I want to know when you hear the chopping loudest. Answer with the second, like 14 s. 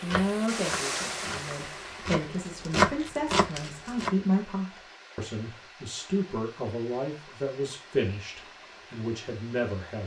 3 s.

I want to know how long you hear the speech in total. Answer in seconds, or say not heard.
10 s.